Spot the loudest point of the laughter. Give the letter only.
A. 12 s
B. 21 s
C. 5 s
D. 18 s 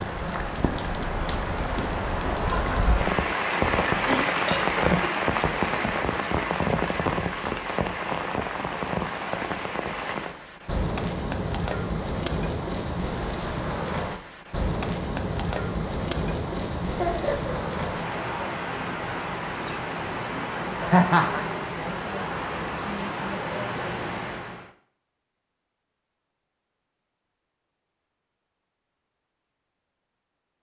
B.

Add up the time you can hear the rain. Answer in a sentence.
You can hear the rain for 25 seconds altogether.